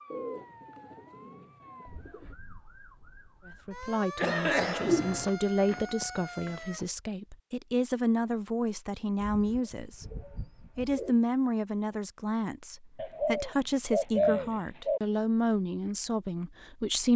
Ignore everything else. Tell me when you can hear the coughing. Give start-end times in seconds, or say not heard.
4.2-5.2.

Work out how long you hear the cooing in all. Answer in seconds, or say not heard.
8 s.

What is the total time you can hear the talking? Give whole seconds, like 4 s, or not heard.
14 s.